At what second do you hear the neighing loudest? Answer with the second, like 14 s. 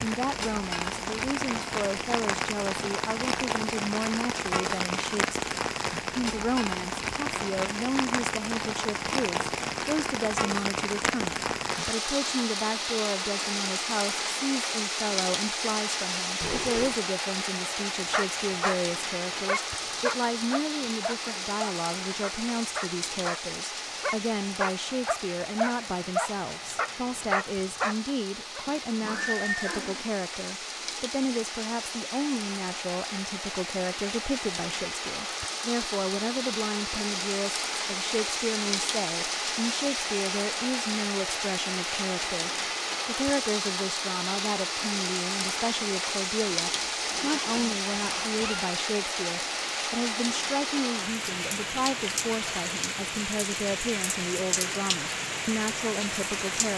29 s.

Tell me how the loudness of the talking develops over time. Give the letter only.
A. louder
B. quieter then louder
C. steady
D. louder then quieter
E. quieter
C.